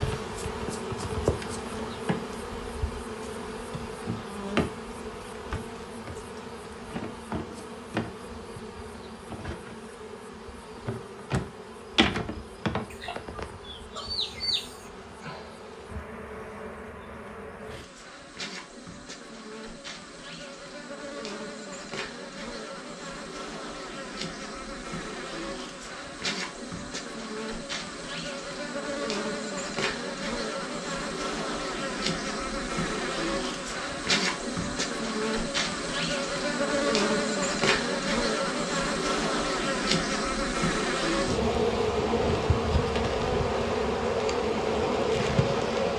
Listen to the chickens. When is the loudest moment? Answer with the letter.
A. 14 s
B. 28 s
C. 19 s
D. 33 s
A.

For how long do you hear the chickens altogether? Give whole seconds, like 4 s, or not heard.
2 s.